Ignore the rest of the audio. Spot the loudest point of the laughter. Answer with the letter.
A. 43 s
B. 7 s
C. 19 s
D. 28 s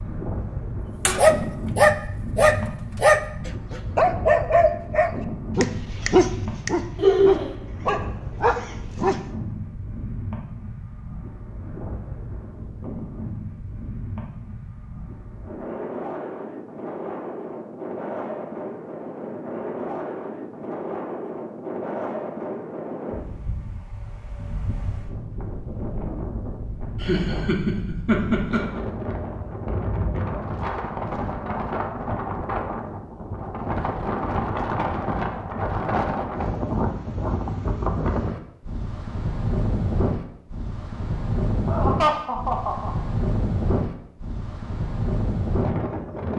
B.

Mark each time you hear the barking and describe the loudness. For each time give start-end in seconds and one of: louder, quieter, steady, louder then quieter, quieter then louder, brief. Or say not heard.
1.1-9.2 quieter.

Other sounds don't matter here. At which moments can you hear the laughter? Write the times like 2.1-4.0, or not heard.
7.0-7.5, 27.0-28.8, 41.6-42.9.